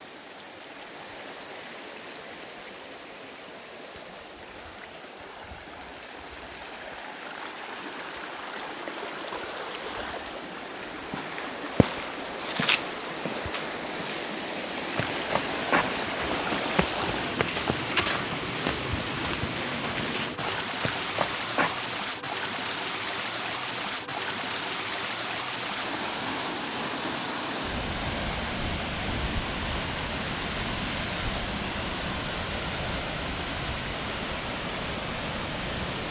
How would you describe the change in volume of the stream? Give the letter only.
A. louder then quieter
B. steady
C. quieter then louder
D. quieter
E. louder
E.